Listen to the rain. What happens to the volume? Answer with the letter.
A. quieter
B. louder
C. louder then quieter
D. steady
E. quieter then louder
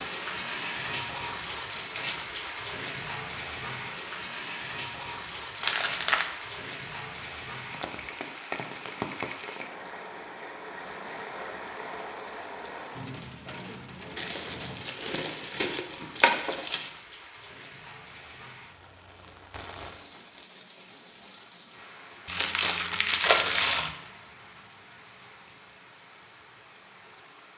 A.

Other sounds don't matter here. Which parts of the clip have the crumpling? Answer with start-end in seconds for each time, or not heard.
5.6-6.3, 14.2-16.9, 22.2-23.9.